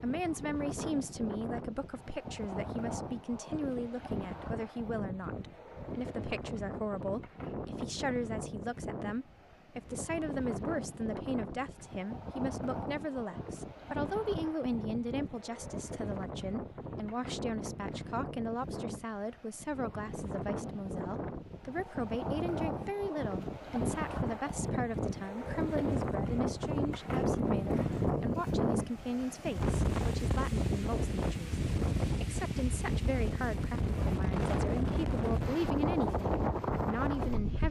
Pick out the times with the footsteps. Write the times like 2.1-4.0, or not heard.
not heard.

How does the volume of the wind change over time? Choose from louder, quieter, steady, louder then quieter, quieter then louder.
louder.